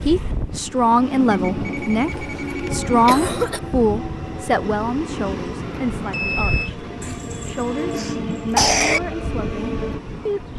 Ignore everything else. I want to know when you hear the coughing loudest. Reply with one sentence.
The loudest moment of the coughing is at 9 seconds.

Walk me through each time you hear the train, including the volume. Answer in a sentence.
You can hear the train from 0.0 to 10.5 s, at a steady volume.